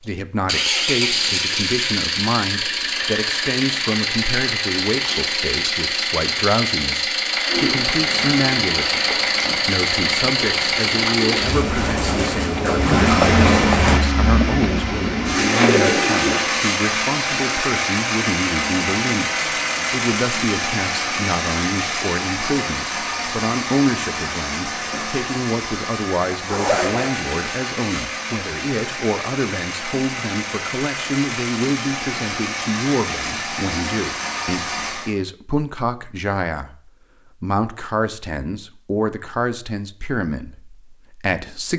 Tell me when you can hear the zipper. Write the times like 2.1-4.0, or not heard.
13.2-13.8, 26.4-27.1.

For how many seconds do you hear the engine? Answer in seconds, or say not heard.
35 s.